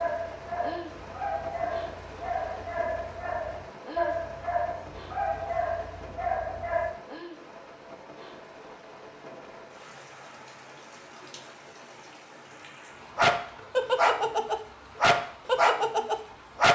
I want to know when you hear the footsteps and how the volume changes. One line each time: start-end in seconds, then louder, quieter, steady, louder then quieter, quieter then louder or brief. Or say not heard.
not heard.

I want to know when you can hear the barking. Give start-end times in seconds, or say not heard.
0.0-7.0, 13.2-16.7.